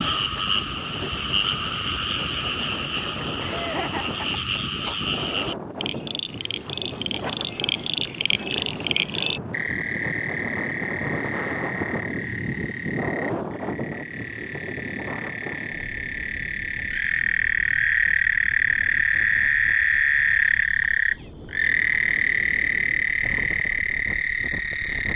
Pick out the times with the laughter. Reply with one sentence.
The laughter can be heard from 3.4 to 5.0 s.